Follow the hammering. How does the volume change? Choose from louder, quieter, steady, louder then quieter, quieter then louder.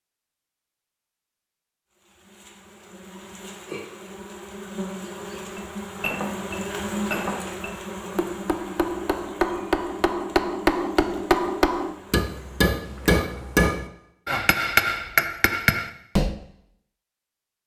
louder.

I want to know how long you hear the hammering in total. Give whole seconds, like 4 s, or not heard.
11 s.